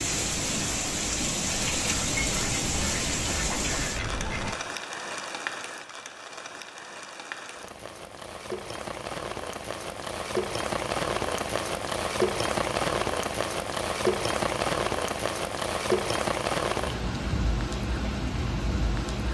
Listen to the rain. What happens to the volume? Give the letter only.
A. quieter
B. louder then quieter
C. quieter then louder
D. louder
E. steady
C.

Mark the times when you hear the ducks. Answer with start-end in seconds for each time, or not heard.
0.1-4.5.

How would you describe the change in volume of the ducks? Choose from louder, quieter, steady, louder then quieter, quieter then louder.
louder.